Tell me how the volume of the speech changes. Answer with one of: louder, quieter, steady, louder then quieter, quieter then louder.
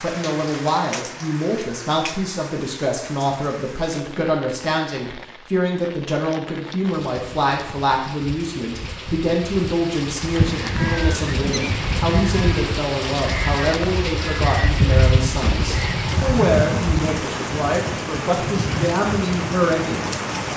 steady.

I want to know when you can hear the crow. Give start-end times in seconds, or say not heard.
10.3-17.1.